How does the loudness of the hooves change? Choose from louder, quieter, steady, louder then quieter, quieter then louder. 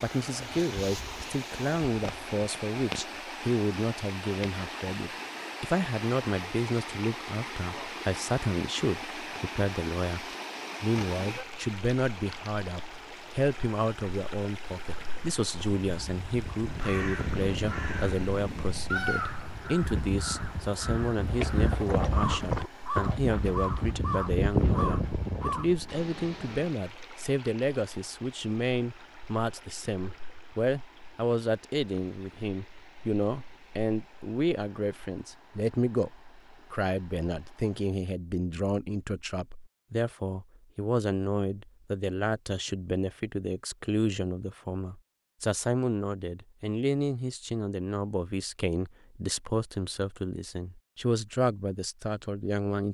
louder.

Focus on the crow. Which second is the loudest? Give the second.
19 s.